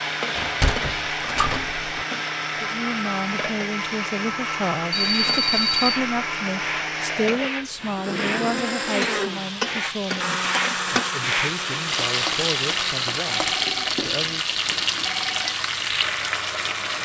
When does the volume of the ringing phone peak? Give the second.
6 s.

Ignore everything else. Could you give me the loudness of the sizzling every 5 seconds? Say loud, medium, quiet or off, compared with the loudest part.
medium, medium, loud, loud.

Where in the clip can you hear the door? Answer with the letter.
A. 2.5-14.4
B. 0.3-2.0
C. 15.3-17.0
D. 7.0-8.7
B.